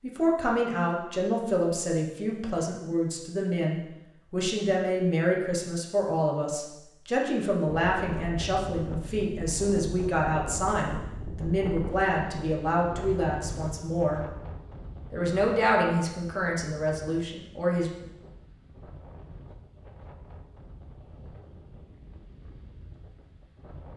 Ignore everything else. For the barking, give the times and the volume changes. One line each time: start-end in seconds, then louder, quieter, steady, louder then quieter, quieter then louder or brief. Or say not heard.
not heard.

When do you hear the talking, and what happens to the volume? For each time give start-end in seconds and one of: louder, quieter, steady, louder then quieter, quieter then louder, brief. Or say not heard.
0.0-14.2 steady
15.1-17.9 brief.